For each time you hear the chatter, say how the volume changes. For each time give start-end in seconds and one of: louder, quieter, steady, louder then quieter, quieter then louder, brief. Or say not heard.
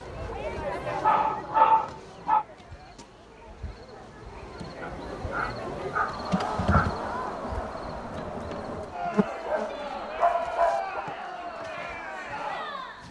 0.0-13.0 quieter then louder.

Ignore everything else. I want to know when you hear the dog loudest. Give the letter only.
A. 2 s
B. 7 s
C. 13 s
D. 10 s
A.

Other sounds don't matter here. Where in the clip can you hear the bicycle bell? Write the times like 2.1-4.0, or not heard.
not heard.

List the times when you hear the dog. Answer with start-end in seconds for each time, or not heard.
0.8-2.5, 4.8-7.0, 9.4-11.1.